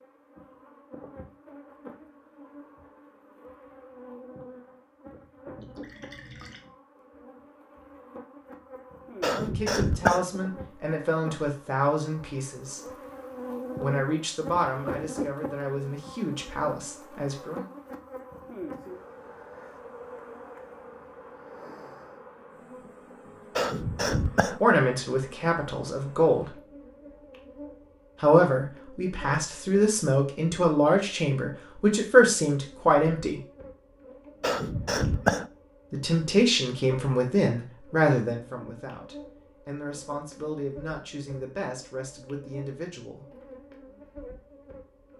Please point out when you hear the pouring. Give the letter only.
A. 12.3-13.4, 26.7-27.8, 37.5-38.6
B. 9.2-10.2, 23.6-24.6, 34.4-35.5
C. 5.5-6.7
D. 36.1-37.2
C.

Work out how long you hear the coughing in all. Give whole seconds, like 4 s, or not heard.
3 s.